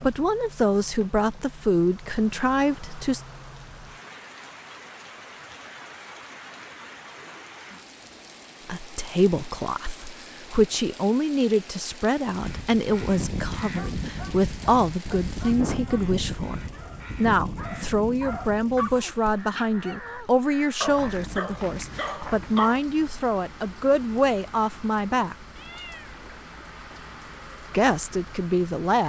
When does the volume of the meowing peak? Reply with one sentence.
The volume of the meowing peaks at 26 seconds.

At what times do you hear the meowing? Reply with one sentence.
The meowing can be heard from 25.6 to 27.1 s.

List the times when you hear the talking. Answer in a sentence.
You can hear the talking from 0.0 to 3.2 s, from 8.7 to 16.6 s, from 17.1 to 25.4 s and from 27.7 to 29.0 s.